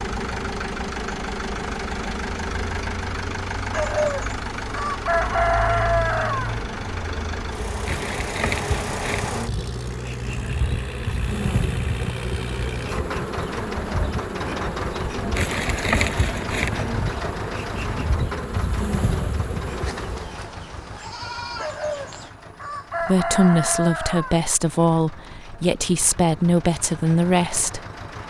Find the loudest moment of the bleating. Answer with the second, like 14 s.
21 s.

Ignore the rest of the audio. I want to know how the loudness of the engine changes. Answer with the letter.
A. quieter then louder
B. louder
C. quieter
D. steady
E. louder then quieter
C.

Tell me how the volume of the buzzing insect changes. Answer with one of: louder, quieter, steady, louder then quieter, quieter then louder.
louder.